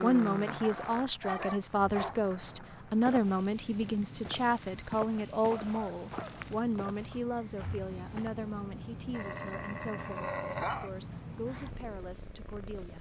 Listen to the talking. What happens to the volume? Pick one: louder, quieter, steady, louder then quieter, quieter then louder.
quieter.